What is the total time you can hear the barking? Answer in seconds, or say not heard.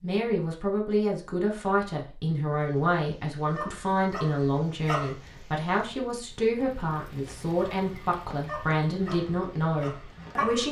5 s.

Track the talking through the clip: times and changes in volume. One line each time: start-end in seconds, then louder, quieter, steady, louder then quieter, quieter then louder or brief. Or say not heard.
0.0-10.6 steady.